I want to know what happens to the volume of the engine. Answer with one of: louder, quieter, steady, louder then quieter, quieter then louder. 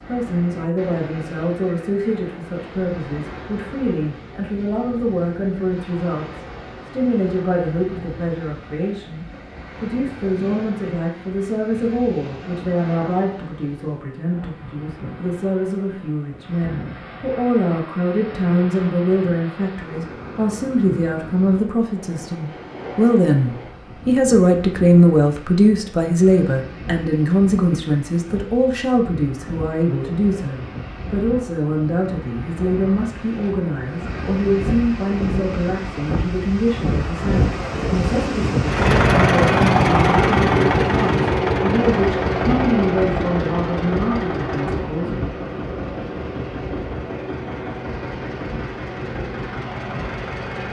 quieter.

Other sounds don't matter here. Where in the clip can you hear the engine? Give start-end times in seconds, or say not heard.
38.6-50.6.